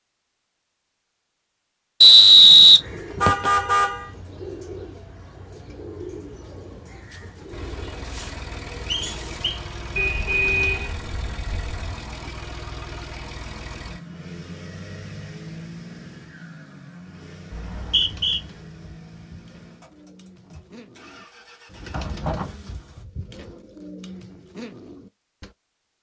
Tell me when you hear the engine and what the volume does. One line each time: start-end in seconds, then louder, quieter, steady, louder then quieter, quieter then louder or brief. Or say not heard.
7.5-23.1 quieter.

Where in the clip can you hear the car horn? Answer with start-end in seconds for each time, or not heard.
3.2-4.1, 9.9-11.8, 21.9-22.6.